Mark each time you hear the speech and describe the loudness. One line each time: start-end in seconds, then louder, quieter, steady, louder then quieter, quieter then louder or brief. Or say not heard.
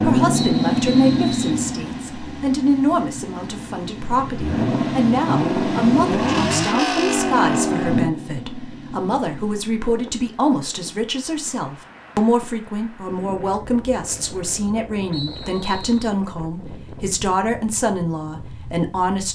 0.0-19.3 steady.